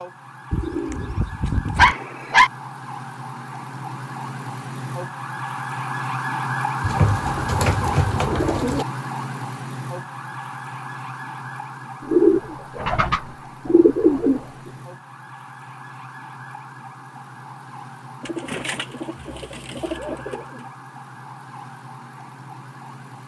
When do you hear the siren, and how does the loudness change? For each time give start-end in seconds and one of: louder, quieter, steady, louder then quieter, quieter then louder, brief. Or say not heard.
0.0-23.2 louder then quieter.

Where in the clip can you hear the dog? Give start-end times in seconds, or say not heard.
1.8-2.5.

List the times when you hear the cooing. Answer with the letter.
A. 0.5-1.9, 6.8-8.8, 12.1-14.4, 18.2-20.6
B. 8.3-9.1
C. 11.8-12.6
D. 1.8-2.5
A.